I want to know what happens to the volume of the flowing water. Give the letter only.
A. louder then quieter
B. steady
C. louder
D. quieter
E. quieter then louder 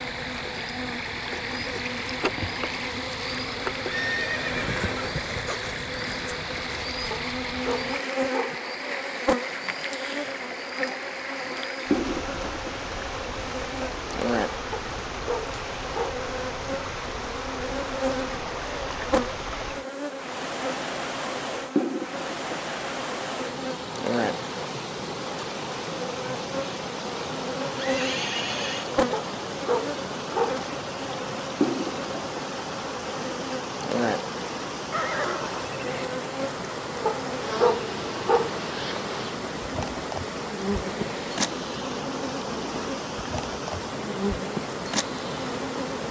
B.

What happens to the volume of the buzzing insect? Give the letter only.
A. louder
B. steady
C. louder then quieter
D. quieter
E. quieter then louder
B.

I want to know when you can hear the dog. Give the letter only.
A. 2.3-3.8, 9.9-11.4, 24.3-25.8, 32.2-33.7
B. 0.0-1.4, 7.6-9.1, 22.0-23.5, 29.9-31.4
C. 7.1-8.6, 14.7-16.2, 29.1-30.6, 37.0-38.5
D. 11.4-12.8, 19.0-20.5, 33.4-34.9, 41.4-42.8
C.